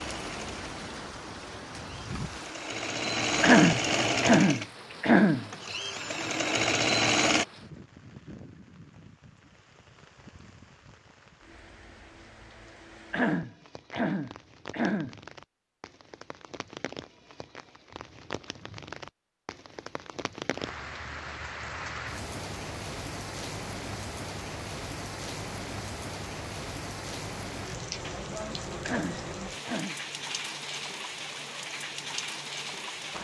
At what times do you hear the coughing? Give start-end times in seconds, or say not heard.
3.4-5.5, 13.1-15.2, 28.8-29.9.